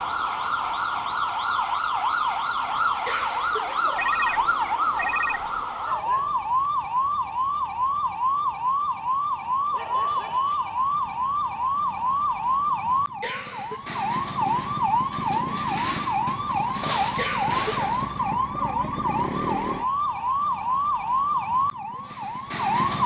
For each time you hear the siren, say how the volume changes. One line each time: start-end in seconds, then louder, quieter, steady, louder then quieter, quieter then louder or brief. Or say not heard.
0.0-23.0 steady.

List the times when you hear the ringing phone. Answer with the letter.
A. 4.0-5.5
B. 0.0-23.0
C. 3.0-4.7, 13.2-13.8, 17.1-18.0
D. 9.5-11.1
A.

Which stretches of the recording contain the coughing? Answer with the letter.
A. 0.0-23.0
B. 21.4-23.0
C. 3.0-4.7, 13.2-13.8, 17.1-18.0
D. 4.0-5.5
C.